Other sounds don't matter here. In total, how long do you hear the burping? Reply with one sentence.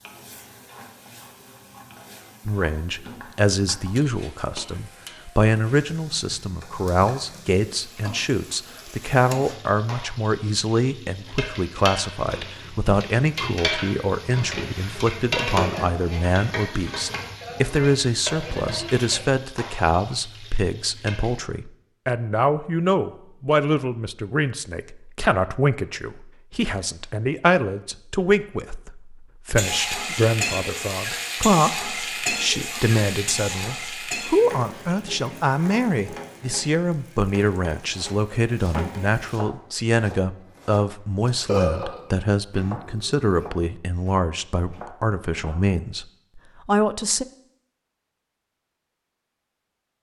The burping can be heard for 2 seconds in total.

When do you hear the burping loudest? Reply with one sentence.
The volume of the burping peaks at 42 seconds.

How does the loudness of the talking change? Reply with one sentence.
The volume of the talking stays about the same.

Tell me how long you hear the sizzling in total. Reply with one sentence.
The sizzling can be heard for 31 seconds in total.